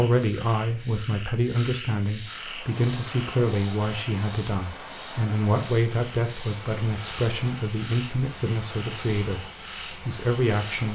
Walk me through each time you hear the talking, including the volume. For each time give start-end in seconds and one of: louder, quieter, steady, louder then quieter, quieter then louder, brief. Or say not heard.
0.0-9.4 steady
10.1-10.9 brief.